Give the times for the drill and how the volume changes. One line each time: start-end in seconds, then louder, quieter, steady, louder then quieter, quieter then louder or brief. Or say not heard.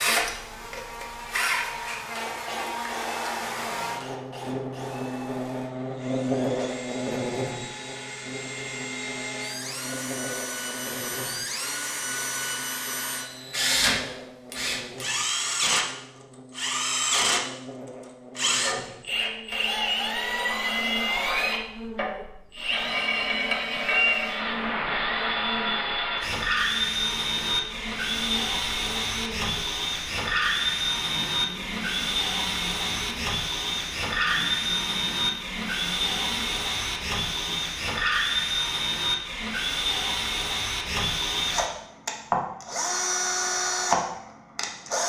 0.0-45.0 louder.